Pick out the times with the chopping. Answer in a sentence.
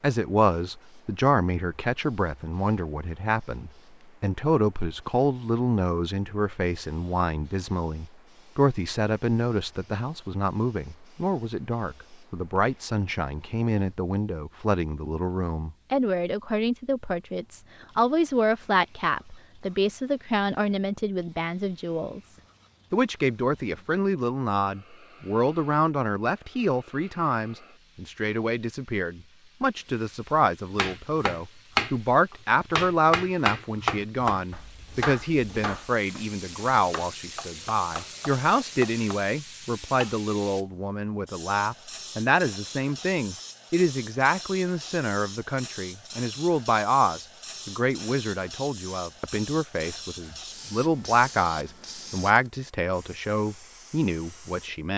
You can hear the chopping from 30.8 to 31.9 s and from 32.7 to 40.1 s.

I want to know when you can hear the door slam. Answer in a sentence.
You can't hear the door slam here.